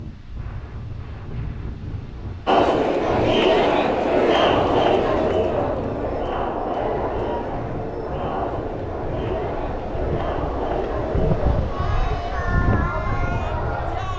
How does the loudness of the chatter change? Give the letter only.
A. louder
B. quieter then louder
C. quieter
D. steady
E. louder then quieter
C.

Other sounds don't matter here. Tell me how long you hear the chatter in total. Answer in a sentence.
The chatter can be heard for 12 seconds in total.